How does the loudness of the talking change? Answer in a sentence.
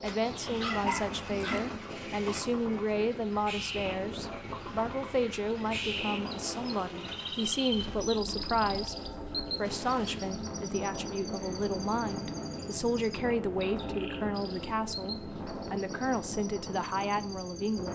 The loudness of the talking stays about the same.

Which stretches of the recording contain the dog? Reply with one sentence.
The dog can be heard from 0.5 to 1.8 s.